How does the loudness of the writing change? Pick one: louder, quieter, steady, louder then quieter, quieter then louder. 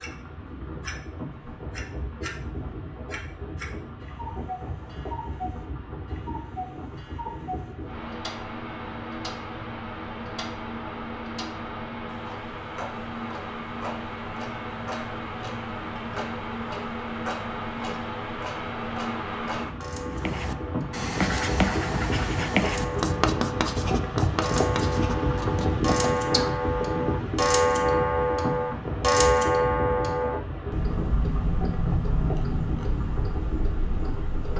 quieter.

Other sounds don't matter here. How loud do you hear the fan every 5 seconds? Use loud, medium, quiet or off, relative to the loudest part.
medium, medium, medium, loud, loud, loud, medium.